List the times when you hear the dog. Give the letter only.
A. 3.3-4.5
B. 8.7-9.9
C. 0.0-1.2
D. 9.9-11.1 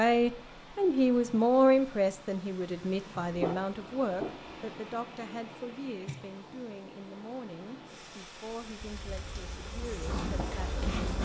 A.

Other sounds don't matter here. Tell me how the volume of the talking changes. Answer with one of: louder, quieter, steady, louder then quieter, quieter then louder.
quieter.